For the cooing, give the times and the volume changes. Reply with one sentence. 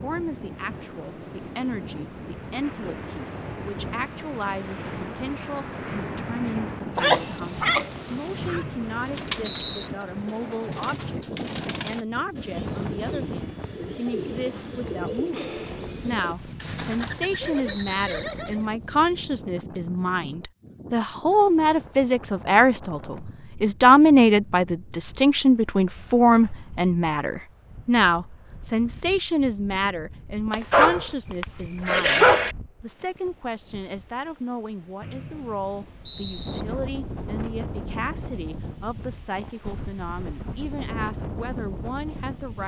The cooing can be heard from 8.9 to 18.6 s, at a steady volume.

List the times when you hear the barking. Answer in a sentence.
The barking can be heard from 7.0 to 8.7 s and from 30.5 to 32.5 s.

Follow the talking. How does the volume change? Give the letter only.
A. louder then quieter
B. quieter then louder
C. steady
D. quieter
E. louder
A.